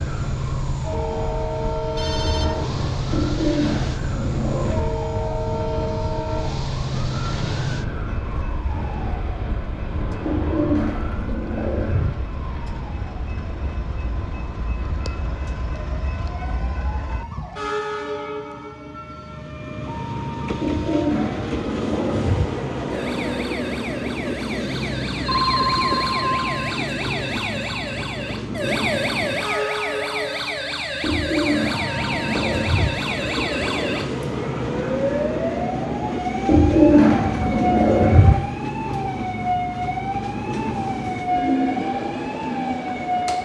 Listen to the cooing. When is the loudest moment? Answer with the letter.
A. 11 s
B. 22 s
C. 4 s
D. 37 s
D.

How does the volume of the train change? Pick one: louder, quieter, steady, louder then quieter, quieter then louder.
quieter then louder.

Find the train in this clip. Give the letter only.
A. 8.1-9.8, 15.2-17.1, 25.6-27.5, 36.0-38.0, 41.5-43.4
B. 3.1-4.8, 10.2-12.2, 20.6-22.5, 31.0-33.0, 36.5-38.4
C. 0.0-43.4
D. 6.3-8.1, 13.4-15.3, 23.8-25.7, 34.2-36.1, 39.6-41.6
C.